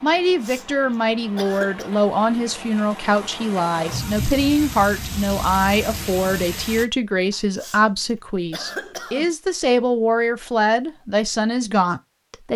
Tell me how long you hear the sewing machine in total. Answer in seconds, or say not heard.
not heard.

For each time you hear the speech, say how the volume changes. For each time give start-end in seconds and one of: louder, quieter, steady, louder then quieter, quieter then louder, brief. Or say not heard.
0.0-12.5 steady.